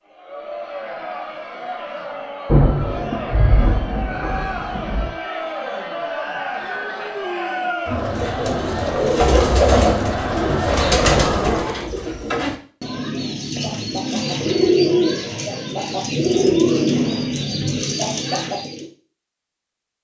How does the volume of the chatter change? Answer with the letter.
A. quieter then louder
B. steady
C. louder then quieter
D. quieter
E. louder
E.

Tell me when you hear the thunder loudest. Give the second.
3 s.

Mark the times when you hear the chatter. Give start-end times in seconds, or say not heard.
0.1-11.9.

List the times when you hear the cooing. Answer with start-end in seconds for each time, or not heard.
8.0-18.9.